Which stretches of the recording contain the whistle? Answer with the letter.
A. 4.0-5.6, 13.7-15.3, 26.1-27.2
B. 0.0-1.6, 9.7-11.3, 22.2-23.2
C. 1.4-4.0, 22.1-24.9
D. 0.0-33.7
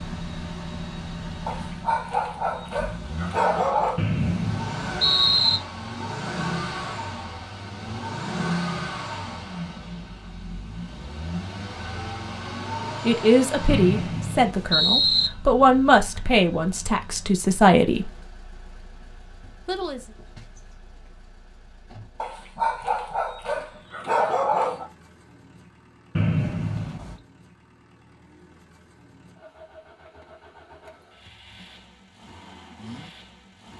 A.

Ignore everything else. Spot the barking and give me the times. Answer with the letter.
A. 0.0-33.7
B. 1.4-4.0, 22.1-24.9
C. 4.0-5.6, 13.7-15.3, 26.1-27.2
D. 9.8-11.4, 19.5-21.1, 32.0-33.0
B.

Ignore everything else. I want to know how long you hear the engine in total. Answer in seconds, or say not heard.
34 s.